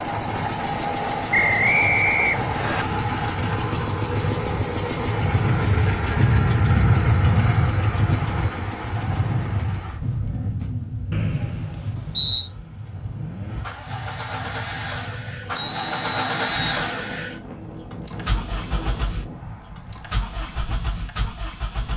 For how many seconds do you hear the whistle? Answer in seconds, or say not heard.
4 s.